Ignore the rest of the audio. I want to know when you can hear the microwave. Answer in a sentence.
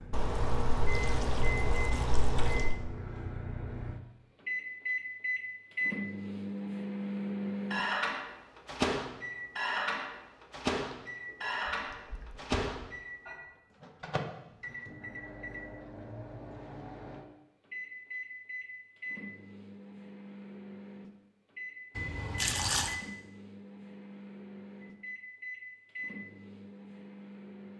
You can hear the microwave from 0.0 to 27.7 s.